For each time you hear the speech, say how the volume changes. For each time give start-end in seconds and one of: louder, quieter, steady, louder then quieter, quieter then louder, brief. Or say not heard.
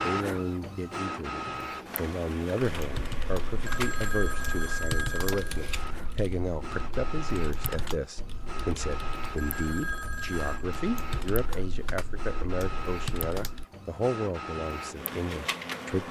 0.0-16.0 steady.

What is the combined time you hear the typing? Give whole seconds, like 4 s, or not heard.
11 s.